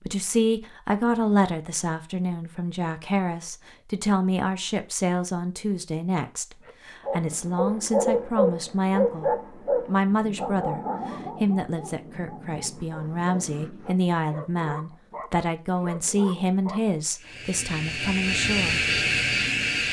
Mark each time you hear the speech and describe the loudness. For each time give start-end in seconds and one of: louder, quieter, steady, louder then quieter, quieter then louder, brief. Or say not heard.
0.1-18.8 steady.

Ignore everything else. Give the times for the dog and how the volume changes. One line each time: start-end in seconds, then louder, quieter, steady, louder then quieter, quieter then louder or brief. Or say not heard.
6.7-17.4 quieter.